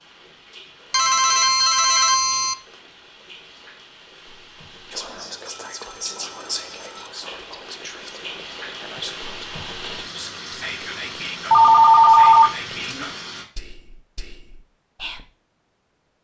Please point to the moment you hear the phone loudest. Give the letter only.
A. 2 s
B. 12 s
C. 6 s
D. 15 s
B.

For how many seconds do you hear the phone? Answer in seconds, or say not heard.
5 s.